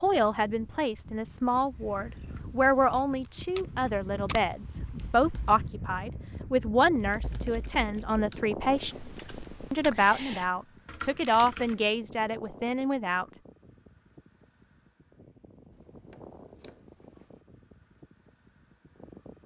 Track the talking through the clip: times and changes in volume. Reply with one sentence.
The talking can be heard from 0.0 to 13.2 s, at a steady volume.